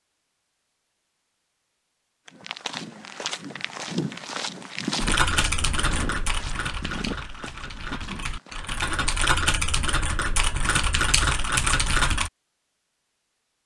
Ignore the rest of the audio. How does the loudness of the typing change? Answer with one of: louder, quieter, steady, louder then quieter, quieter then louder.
quieter then louder.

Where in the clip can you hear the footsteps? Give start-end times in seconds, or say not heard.
2.2-8.6.